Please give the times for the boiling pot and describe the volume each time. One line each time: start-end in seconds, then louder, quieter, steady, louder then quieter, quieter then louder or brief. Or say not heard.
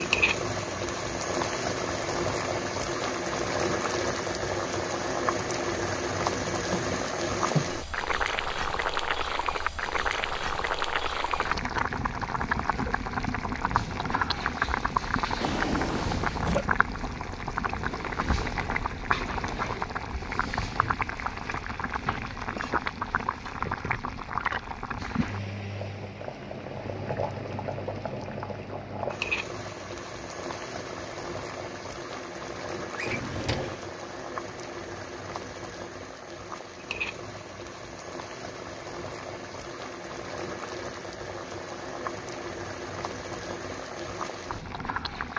0.0-45.3 quieter.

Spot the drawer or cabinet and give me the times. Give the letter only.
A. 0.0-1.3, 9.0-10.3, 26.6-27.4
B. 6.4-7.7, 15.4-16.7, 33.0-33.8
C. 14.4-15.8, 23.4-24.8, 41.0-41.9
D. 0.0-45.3
B.